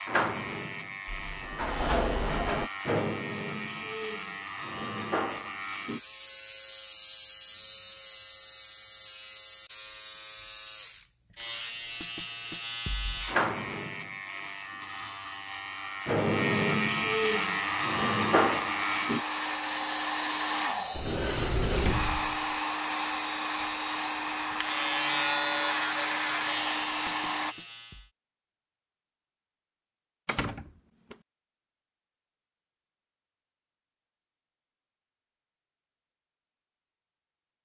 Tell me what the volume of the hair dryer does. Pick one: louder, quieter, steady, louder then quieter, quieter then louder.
steady.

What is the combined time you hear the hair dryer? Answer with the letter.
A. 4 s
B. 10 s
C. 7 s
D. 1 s
B.